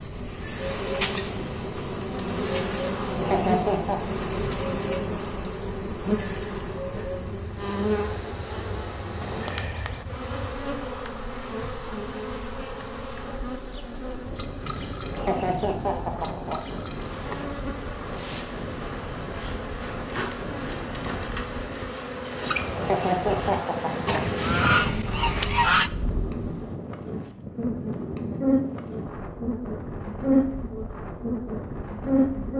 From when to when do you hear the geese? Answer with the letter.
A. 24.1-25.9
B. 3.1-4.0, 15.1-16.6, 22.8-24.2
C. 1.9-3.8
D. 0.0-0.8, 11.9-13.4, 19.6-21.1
A.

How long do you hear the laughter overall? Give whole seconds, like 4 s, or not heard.
4 s.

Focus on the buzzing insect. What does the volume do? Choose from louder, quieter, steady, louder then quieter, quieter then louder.
quieter then louder.